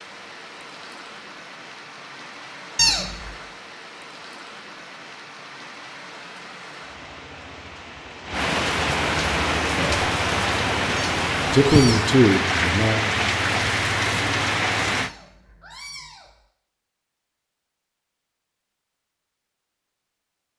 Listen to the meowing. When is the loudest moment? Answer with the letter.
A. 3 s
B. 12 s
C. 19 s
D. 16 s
A.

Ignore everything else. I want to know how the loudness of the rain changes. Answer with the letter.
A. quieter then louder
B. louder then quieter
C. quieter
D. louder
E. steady
D.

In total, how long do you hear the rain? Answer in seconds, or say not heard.
15 s.